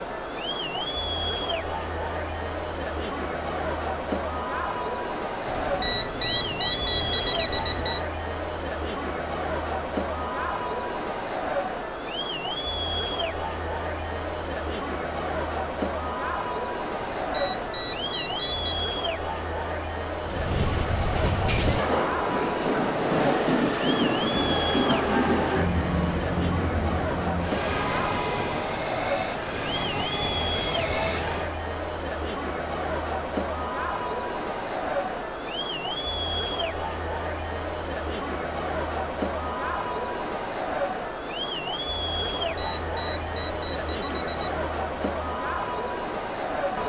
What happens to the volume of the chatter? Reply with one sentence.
The loudness of the chatter stays about the same.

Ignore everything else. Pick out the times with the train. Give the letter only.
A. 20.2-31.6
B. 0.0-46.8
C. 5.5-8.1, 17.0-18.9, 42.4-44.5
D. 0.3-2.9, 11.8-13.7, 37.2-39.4
A.